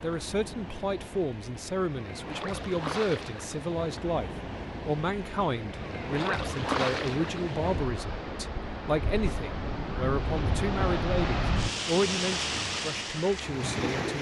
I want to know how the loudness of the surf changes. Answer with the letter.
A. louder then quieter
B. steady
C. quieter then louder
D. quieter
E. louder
E.